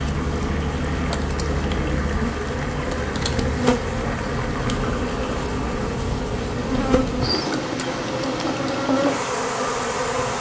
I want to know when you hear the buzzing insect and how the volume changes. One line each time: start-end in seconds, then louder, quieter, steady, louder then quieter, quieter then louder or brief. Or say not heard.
0.0-10.3 steady.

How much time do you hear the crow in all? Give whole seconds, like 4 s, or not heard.
not heard.